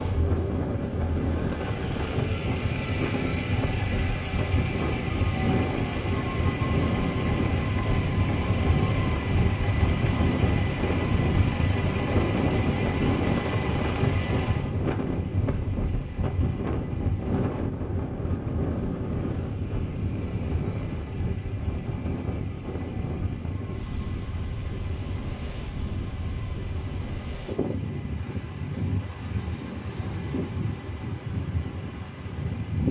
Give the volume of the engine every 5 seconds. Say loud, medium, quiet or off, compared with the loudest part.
loud, loud, loud, quiet, quiet, quiet, quiet.